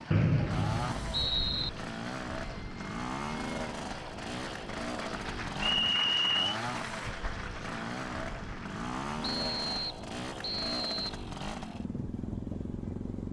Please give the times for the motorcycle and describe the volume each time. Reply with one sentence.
The motorcycle can be heard from 0.0 to 13.2 s, at a steady volume.